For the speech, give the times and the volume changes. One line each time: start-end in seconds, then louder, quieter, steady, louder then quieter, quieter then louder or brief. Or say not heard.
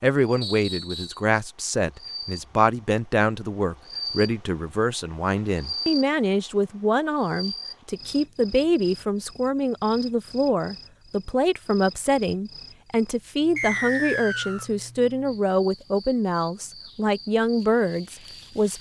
0.0-18.7 steady.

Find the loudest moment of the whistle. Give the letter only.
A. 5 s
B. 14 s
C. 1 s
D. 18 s
B.